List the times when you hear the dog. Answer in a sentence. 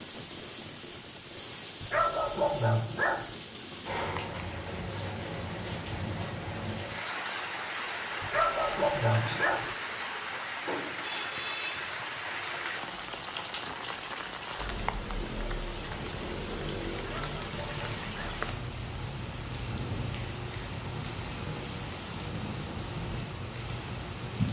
The dog can be heard from 1.8 to 3.4 s, from 8.2 to 9.8 s and from 17.0 to 18.4 s.